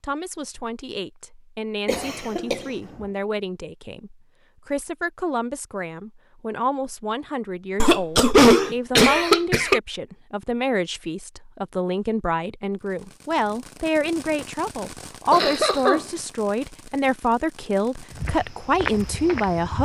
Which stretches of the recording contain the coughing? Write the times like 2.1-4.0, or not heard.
1.9-2.6, 7.8-9.8, 15.3-16.0.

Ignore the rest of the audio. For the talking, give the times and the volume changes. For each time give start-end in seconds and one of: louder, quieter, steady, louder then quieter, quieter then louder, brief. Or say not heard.
0.0-19.7 louder.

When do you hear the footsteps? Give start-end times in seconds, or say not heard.
18.1-19.7.